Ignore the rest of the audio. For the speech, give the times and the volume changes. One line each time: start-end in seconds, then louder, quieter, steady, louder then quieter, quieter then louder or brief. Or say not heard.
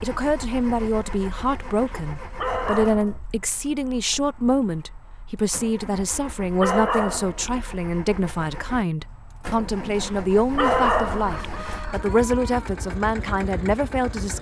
0.0-14.3 steady.